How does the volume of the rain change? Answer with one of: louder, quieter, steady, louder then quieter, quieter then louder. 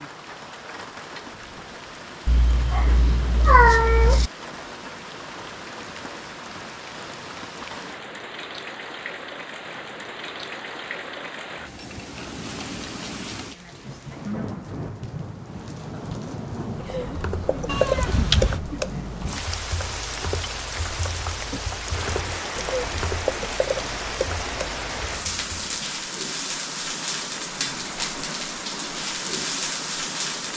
louder.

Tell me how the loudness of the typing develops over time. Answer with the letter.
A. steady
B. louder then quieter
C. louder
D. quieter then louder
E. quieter
D.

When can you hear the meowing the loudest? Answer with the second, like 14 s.
4 s.